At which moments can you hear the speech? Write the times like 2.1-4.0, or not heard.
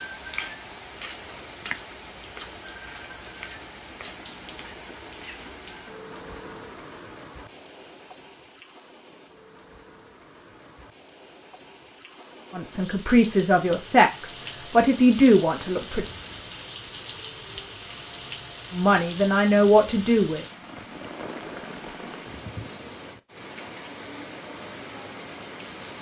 12.5-16.1, 18.7-20.4.